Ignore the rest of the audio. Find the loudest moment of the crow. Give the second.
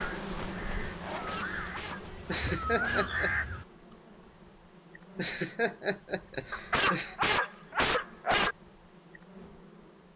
3 s.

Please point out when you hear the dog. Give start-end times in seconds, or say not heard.
1.1-3.0, 6.5-8.6.